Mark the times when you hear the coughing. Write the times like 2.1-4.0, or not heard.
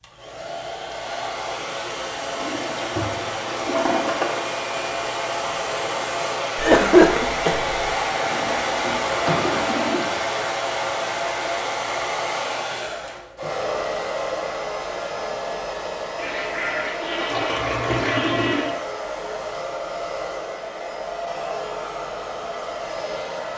6.5-7.9.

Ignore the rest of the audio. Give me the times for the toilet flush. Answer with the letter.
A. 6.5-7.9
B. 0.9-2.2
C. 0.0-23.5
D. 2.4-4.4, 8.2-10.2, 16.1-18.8
D.